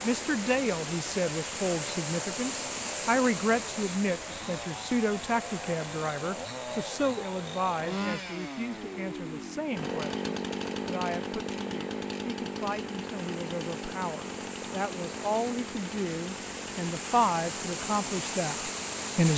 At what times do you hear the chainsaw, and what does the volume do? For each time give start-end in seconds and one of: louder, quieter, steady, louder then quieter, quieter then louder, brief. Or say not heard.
0.0-19.3 louder then quieter.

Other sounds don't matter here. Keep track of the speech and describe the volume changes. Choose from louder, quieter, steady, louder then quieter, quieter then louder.
quieter then louder.